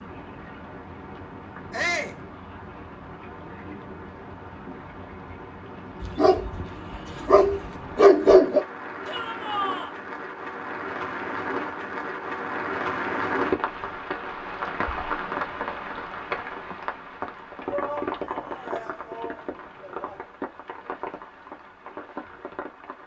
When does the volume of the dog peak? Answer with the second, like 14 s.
8 s.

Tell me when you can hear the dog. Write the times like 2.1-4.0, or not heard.
6.0-8.7.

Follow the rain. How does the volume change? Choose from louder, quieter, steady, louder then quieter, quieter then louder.
louder then quieter.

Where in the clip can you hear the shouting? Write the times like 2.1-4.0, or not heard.
1.7-2.2, 9.1-9.9, 17.6-20.2.